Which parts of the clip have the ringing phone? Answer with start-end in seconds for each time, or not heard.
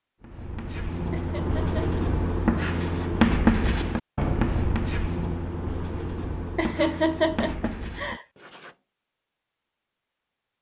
not heard.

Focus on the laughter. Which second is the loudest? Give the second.
7 s.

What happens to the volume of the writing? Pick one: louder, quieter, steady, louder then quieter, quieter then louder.
louder then quieter.